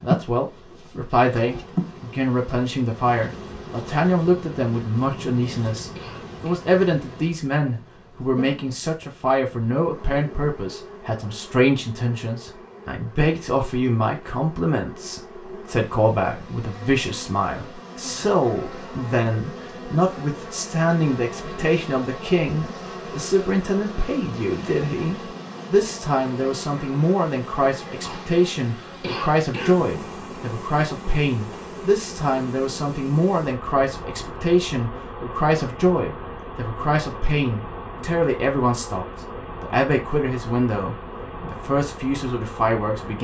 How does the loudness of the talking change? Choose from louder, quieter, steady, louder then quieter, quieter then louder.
steady.